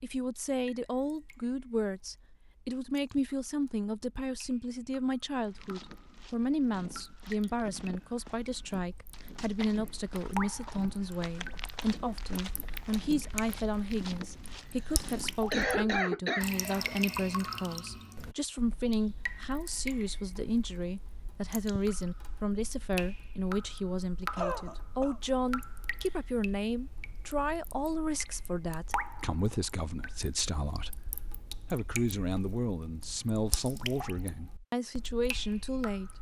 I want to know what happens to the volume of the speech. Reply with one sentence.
The loudness of the speech stays about the same.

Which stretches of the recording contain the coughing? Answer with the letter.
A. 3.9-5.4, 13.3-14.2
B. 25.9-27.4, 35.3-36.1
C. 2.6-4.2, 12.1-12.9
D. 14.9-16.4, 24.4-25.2
D.